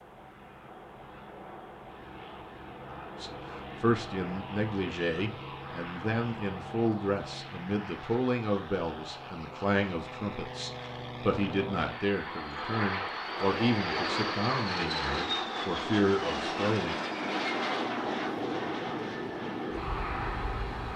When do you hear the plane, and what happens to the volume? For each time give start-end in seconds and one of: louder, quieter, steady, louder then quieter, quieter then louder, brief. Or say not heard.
0.0-20.9 louder.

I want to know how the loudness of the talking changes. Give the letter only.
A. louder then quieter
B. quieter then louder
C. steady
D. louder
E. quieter
C.